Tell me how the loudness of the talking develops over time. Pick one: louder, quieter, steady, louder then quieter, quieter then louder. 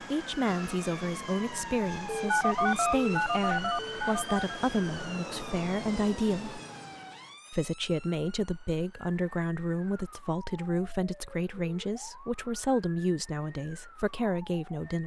steady.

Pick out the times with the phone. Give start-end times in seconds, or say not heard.
2.2-4.5.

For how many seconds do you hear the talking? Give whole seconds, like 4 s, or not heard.
14 s.